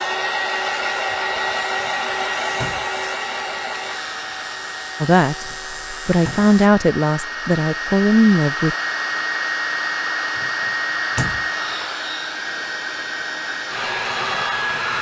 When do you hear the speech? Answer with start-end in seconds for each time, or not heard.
5.0-8.8.